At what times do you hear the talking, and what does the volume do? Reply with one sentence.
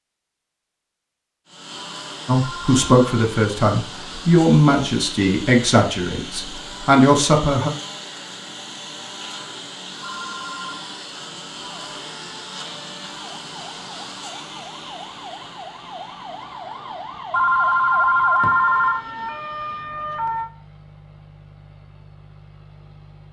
The talking can be heard from 2.2 to 7.7 s, at a steady volume.